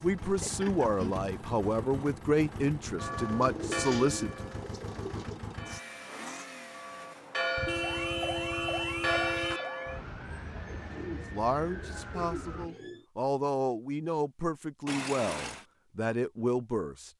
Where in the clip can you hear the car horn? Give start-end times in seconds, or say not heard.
0.2-1.3, 7.5-9.6, 14.8-15.7.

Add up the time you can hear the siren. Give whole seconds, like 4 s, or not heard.
5 s.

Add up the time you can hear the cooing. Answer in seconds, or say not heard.
5 s.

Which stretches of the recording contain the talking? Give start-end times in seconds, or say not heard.
0.0-4.5, 11.3-17.1.